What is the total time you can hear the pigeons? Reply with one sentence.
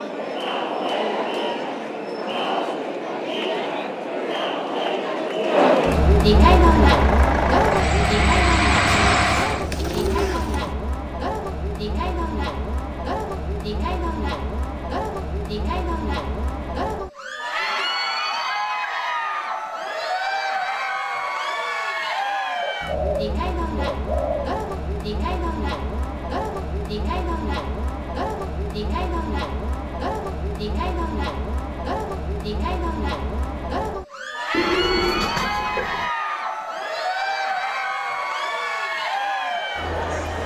You can hear the pigeons for 5 seconds altogether.